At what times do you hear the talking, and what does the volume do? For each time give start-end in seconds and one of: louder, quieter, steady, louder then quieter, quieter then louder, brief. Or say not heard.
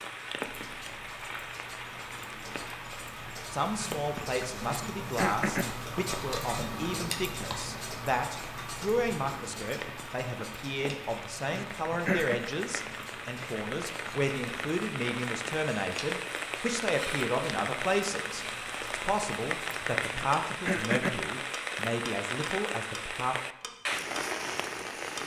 3.5-23.4 steady.